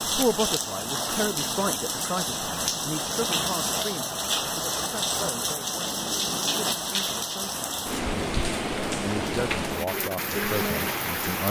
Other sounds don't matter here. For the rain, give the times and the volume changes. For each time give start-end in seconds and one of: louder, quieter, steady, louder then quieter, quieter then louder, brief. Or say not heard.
0.0-11.4 steady.